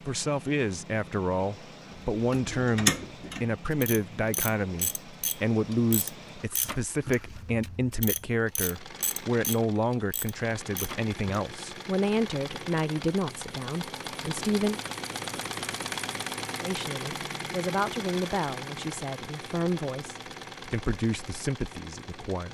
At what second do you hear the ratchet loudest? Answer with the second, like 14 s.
3 s.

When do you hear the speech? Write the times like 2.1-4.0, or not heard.
0.1-14.8, 16.6-22.4.